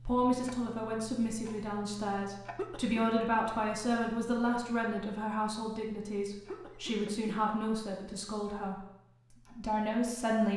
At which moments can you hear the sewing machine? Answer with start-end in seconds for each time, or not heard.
not heard.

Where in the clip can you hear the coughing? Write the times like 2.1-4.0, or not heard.
2.5-3.2, 6.5-7.3.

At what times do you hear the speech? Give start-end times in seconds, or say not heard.
0.1-8.8, 9.5-10.5.